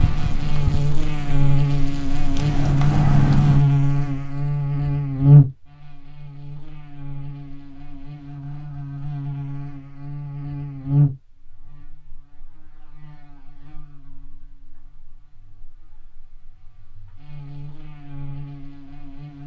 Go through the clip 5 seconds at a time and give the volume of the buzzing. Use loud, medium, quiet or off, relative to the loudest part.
loud, loud, medium, quiet.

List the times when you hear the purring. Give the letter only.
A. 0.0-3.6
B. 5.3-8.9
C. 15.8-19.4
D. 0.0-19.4
A.